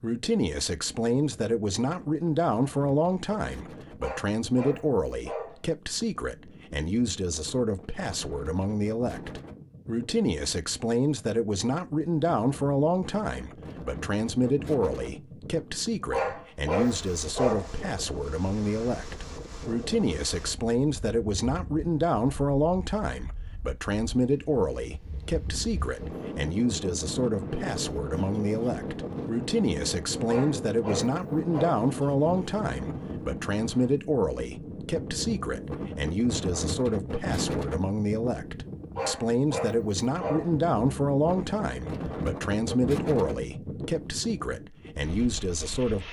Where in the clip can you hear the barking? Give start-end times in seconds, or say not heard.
4.0-5.6, 16.1-17.7, 30.2-31.9, 39.0-40.5.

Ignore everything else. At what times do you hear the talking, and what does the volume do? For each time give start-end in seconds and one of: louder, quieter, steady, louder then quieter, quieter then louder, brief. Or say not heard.
0.0-46.0 steady.